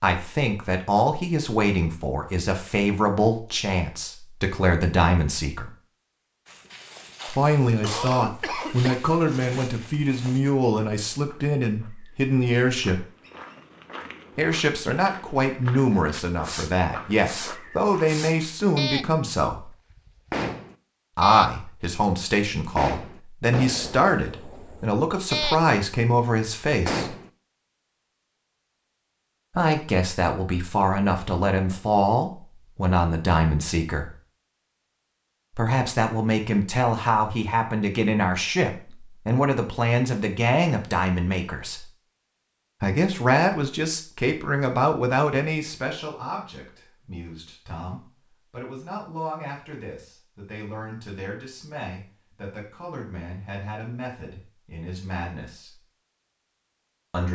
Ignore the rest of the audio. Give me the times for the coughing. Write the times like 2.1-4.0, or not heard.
7.7-9.0.